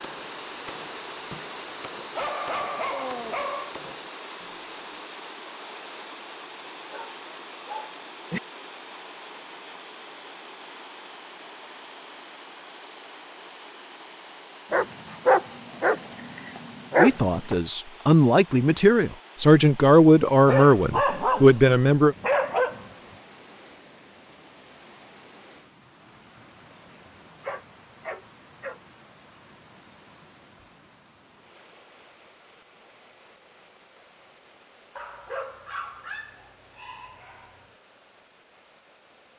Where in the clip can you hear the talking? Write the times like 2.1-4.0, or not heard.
16.9-22.1.